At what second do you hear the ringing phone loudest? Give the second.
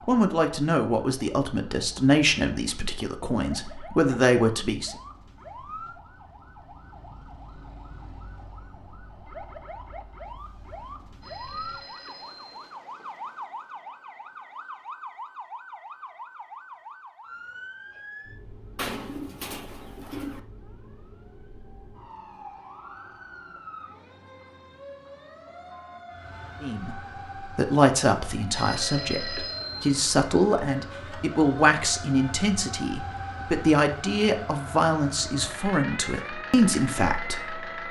29 s.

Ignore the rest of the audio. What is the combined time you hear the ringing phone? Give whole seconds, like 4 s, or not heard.
3 s.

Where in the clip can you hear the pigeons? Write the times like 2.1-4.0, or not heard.
18.8-20.4.